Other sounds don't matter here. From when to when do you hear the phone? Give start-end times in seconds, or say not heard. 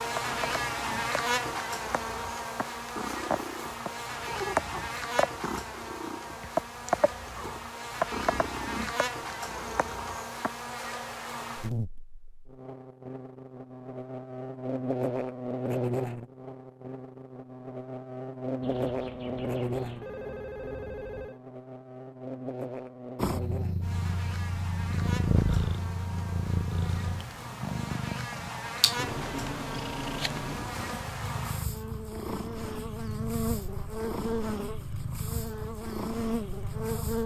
18.6-21.4.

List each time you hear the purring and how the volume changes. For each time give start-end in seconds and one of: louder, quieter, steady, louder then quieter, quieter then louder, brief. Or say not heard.
0.1-10.6 louder then quieter
23.1-37.2 quieter.